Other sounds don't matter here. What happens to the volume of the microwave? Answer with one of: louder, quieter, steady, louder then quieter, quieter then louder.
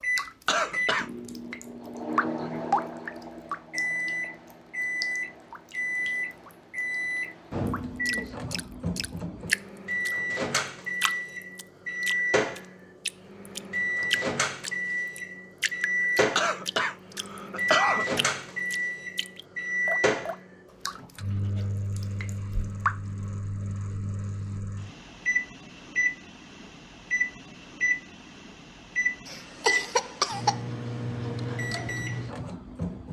steady.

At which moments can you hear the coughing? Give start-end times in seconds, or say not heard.
0.5-1.1, 16.4-18.1, 29.2-30.6.